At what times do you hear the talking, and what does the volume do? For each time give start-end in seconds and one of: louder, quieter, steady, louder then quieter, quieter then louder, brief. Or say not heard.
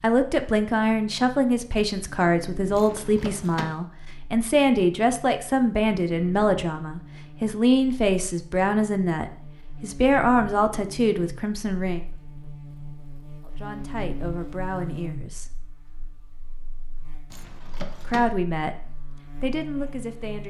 0.0-12.1 steady
13.4-15.6 brief
18.1-20.4 brief.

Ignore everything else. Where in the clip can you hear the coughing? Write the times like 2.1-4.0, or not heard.
not heard.